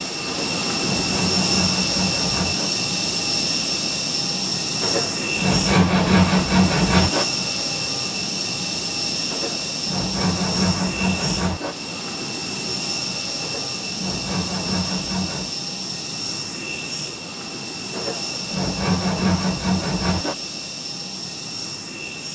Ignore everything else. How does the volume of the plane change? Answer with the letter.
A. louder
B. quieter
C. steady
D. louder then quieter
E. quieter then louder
B.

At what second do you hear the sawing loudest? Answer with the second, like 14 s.
6 s.